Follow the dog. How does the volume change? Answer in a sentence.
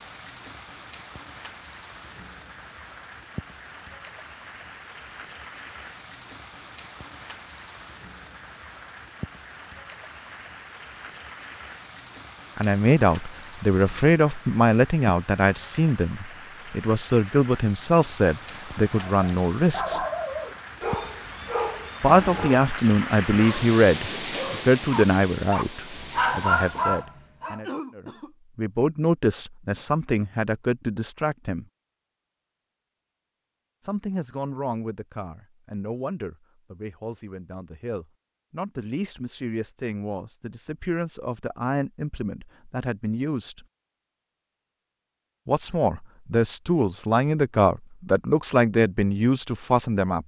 The volume of the dog goes down, then up.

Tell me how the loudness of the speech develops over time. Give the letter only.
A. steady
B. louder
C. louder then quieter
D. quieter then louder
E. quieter
D.